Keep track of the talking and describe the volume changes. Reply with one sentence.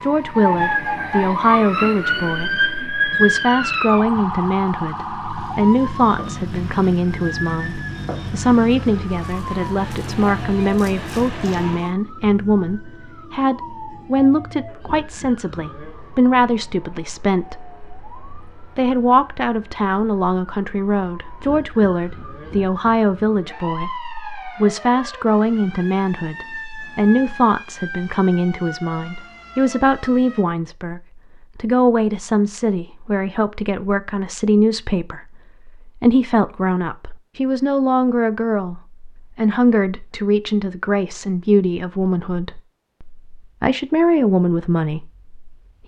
The loudness of the talking stays about the same.